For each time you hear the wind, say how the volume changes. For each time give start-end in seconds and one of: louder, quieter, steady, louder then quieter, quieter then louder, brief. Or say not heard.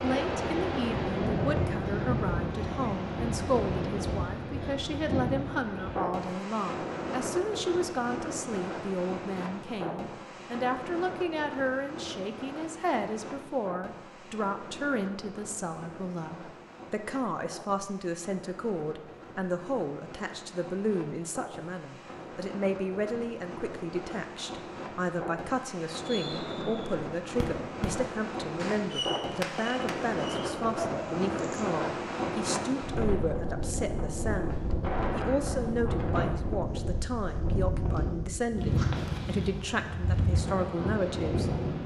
0.0-41.8 quieter then louder.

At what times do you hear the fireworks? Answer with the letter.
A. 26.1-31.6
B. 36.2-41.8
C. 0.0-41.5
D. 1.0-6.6
A.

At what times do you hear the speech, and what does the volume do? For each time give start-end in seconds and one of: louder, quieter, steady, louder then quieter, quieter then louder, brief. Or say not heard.
0.0-41.5 steady.